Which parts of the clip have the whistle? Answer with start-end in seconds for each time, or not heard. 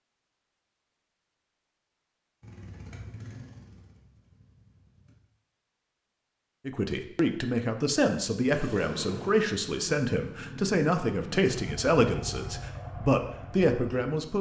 not heard.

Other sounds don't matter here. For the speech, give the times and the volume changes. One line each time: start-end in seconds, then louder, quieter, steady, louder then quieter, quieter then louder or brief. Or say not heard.
6.7-14.3 steady.